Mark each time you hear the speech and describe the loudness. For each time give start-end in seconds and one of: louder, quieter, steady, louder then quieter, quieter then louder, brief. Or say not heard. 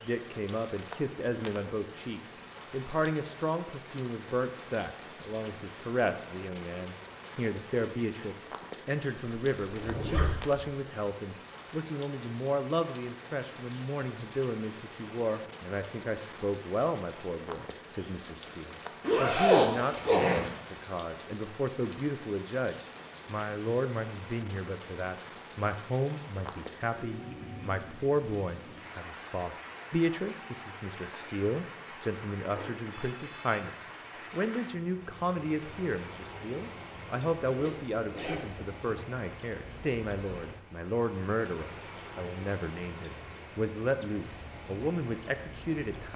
0.0-46.1 steady.